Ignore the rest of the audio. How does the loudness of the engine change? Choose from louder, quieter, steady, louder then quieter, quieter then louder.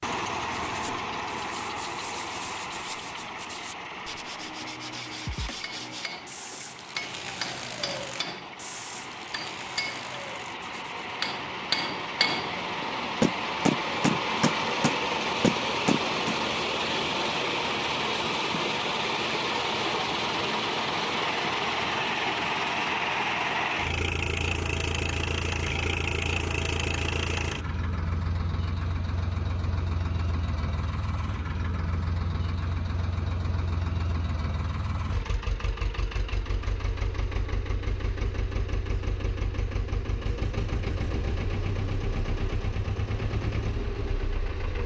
louder then quieter.